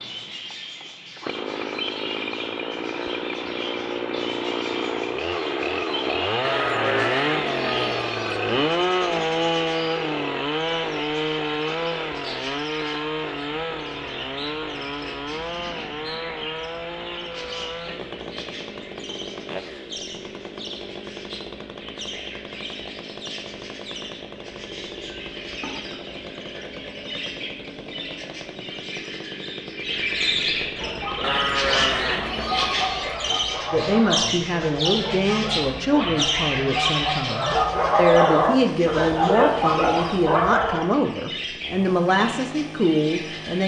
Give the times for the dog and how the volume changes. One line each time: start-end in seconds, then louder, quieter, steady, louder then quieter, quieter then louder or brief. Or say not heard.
30.7-40.9 louder.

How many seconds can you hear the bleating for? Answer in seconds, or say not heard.
4 s.